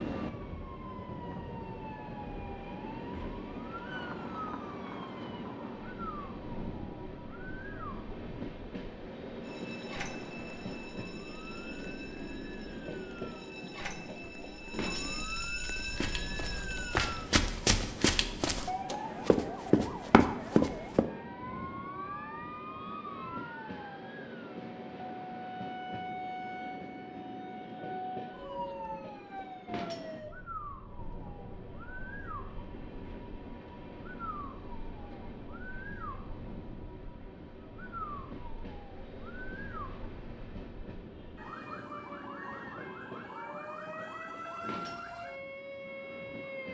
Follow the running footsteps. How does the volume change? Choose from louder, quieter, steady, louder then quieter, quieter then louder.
louder.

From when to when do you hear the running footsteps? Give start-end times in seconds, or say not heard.
15.7-21.1.